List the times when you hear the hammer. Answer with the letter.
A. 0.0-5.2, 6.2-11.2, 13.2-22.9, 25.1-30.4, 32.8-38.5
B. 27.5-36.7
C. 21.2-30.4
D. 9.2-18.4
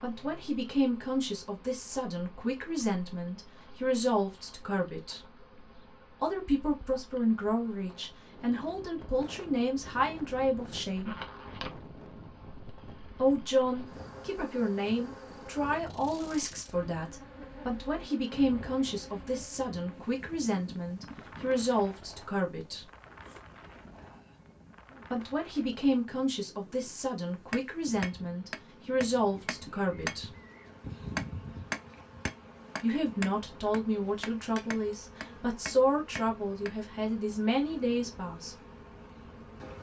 B.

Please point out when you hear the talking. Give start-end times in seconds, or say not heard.
0.0-5.2, 6.2-11.2, 13.2-22.9, 25.1-30.4, 32.8-38.5.